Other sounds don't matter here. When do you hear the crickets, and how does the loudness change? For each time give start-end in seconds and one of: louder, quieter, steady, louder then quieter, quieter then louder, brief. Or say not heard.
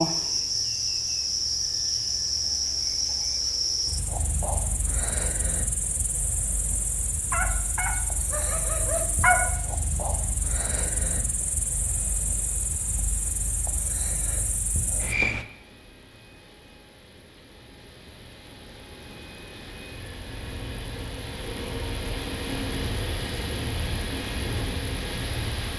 0.0-15.4 quieter.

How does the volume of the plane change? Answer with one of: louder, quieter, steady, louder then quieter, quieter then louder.
louder.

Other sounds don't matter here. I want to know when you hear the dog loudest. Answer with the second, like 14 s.
9 s.